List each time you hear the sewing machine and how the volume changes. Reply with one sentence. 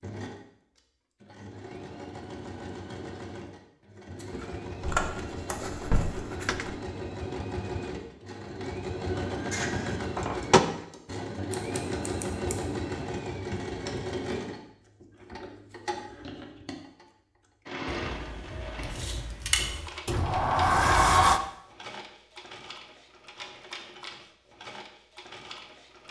The sewing machine can be heard from 0.0 to 26.0 s, getting louder then quieter.